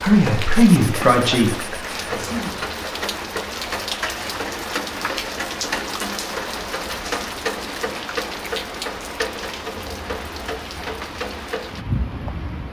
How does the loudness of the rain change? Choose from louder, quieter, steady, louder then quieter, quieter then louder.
steady.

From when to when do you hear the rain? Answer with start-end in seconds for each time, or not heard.
0.0-12.6.